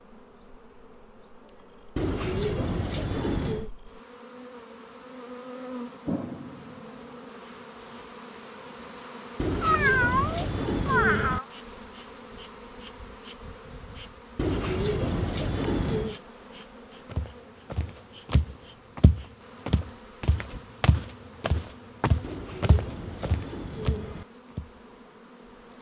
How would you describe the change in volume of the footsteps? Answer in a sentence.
The volume of the footsteps stays about the same.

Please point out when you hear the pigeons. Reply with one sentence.
You can hear the pigeons from 1.9 to 3.7 s, from 9.3 to 11.4 s, from 14.3 to 16.2 s and from 22.2 to 24.2 s.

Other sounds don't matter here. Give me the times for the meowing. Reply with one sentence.
The meowing can be heard from 9.6 to 11.4 s.